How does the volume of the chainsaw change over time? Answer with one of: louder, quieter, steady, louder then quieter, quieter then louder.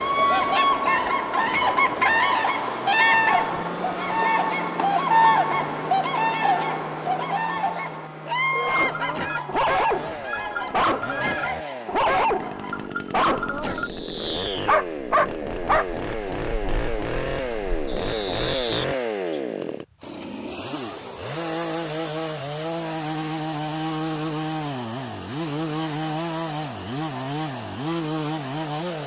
louder.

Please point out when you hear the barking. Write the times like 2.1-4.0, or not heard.
8.7-15.8.